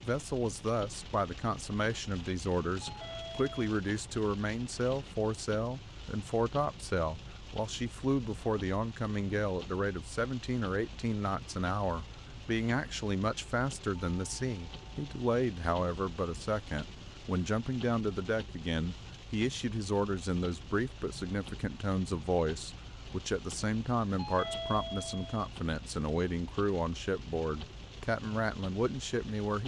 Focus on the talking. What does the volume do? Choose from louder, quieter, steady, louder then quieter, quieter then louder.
steady.